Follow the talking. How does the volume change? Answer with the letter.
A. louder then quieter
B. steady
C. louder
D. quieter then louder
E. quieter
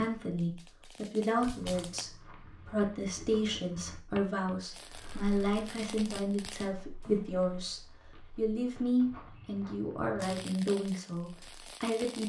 B.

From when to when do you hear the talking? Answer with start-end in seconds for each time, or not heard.
0.0-12.2.